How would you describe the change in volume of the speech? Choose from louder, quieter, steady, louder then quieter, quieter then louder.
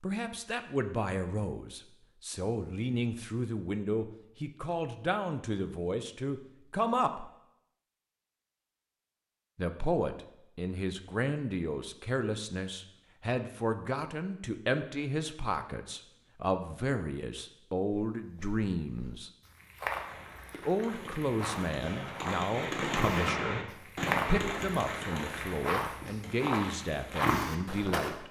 steady.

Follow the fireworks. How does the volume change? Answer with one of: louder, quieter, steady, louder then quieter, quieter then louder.
louder then quieter.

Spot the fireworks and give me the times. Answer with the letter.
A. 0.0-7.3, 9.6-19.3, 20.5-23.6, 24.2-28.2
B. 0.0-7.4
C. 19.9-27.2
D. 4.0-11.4
C.